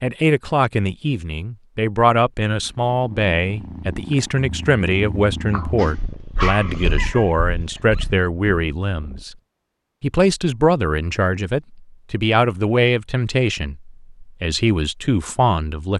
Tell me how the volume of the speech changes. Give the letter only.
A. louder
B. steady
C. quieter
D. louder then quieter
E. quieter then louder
B.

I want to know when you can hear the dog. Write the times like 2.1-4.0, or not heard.
5.8-8.1.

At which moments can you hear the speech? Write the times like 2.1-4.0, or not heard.
0.0-9.3, 10.0-15.9.